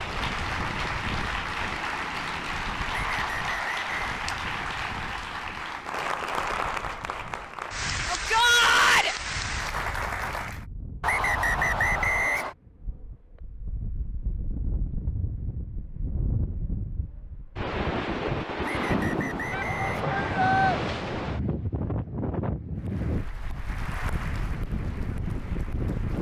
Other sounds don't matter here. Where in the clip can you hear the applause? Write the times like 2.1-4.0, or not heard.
0.0-10.7, 22.8-26.1.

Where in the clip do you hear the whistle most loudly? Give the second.
12 s.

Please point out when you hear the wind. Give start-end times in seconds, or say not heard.
0.0-26.1.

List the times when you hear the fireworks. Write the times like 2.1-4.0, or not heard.
not heard.